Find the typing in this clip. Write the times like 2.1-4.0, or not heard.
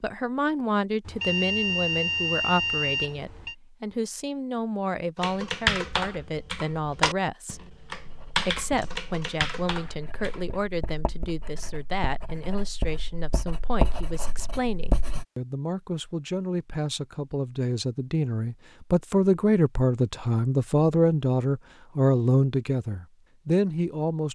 5.2-10.5.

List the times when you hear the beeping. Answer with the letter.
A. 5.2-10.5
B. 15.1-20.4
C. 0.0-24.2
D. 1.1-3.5
D.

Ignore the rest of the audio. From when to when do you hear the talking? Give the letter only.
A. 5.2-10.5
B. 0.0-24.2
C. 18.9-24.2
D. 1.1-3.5
B.